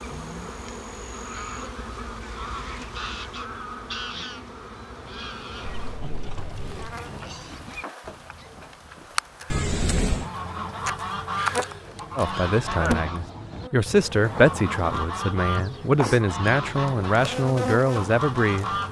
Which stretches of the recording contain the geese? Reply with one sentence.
You can hear the geese from 0.0 to 5.8 s and from 10.1 to 18.8 s.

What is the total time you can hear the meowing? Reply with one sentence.
The meowing can be heard for 2 seconds in total.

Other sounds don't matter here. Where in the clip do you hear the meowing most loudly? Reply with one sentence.
The loudest moment of the meowing is at 10 seconds.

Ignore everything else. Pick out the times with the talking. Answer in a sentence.
You can hear the talking from 12.2 to 18.7 s.